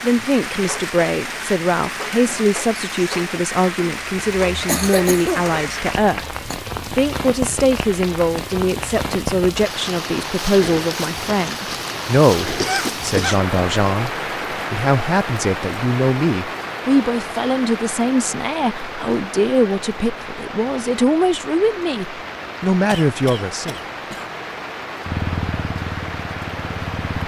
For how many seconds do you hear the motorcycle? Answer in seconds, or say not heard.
2 s.